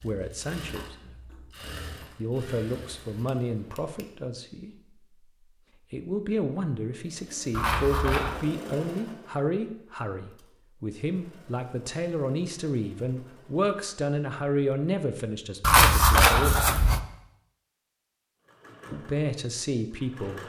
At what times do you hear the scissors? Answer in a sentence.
You can hear the scissors from 2.5 to 4.0 s, from 7.5 to 8.4 s and from 15.6 to 17.0 s.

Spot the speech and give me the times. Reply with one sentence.
You can hear the speech from 0.0 to 1.3 s, from 2.1 to 4.8 s, from 5.9 to 16.9 s and from 18.9 to 20.4 s.